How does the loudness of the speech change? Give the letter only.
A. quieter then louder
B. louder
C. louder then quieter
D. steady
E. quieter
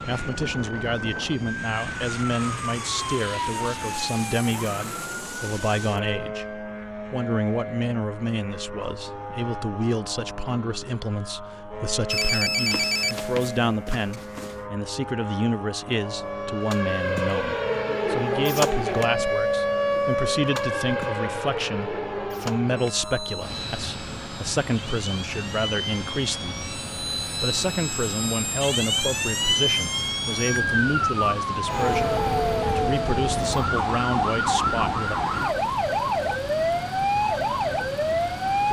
D.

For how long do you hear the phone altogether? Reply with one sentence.
You can hear the phone for 3 seconds altogether.